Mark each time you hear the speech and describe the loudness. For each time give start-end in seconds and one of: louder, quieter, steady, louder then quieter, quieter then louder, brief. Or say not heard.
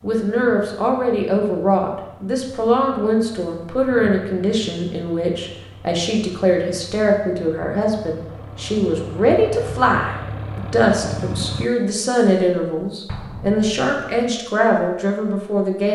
0.0-15.9 steady.